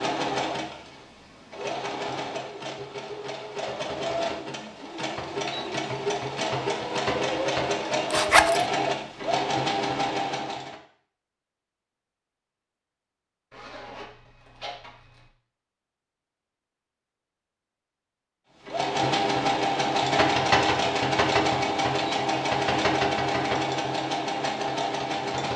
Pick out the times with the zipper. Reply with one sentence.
The zipper can be heard from 8.1 to 8.7 s and from 13.5 to 15.3 s.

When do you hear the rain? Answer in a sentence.
You can't hear the rain here.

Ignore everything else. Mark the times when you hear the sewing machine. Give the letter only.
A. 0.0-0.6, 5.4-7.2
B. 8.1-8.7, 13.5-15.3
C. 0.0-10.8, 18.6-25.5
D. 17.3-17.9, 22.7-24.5
C.